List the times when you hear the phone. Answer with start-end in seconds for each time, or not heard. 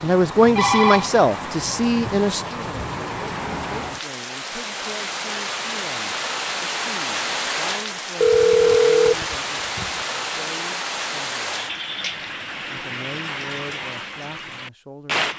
0.3-1.1, 8.2-9.9.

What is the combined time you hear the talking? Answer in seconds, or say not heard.
14 s.